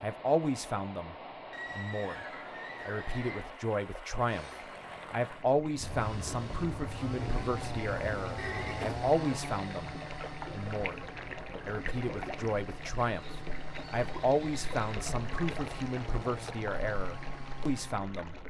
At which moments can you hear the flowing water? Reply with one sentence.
The flowing water can be heard from 0.0 to 18.4 s.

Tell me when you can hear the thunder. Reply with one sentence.
The thunder can be heard from 5.8 to 9.0 s.